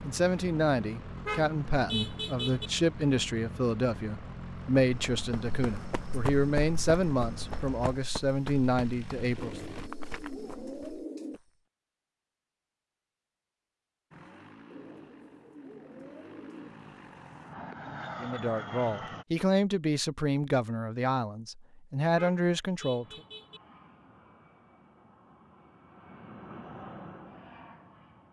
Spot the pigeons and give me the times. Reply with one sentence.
The pigeons can be heard from 9.3 to 11.4 s and from 14.7 to 16.7 s.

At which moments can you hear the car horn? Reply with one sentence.
You can hear the car horn from 1.1 to 2.7 s and from 22.1 to 23.6 s.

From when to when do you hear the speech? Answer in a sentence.
You can hear the speech from 0.0 to 9.6 s and from 18.2 to 23.2 s.